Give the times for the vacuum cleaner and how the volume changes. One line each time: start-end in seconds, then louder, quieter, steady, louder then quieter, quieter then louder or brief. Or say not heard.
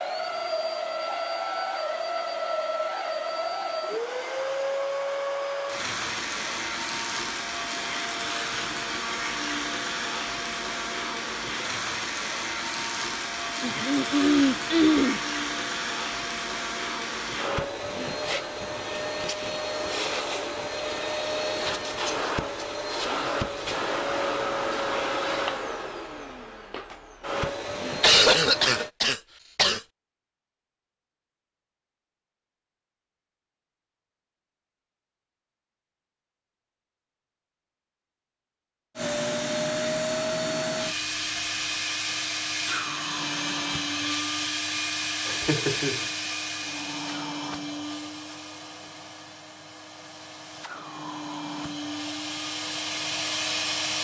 0.0-28.9 steady
39.0-53.9 quieter then louder.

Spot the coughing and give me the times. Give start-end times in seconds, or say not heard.
13.6-15.2, 28.0-29.8, 45.2-46.0.